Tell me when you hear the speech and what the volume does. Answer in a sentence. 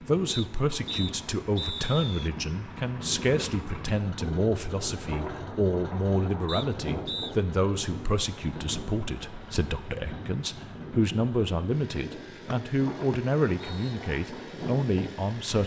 The speech can be heard from 0.1 to 15.6 s, at a steady volume.